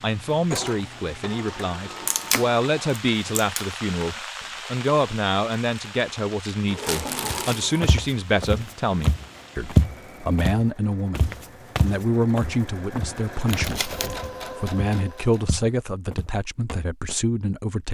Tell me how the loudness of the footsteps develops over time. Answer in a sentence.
The volume of the footsteps goes down.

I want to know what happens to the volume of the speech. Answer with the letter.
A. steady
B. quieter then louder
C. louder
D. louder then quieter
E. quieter
A.